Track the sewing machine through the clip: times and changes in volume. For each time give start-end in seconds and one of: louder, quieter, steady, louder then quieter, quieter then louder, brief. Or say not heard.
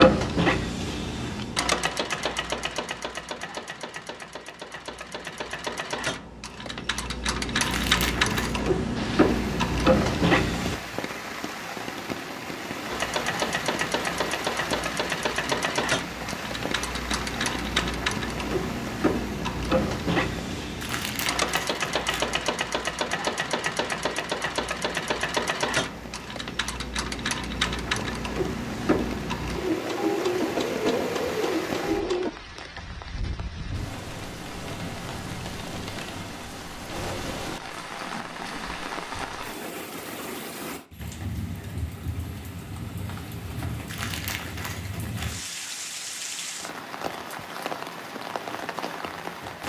0.0-10.8 quieter then louder
12.9-32.3 steady.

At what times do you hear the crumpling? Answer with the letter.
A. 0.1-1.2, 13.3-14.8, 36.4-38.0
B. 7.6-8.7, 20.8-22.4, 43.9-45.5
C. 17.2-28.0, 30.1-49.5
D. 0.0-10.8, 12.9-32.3
B.